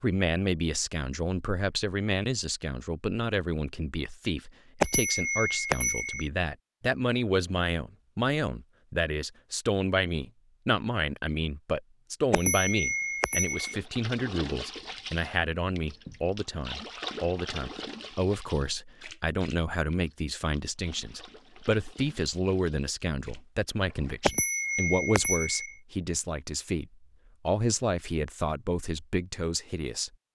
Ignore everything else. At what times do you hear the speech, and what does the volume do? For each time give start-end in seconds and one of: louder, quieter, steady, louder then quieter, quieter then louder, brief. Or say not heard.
0.0-30.1 steady.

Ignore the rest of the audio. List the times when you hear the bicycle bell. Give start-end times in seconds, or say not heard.
4.8-6.3, 12.3-13.8, 24.2-25.8.